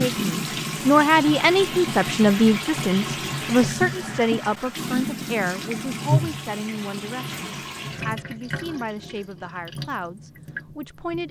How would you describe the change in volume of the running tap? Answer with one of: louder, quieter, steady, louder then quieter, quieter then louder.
quieter.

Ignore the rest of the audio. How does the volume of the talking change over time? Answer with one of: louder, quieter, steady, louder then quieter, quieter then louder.
quieter.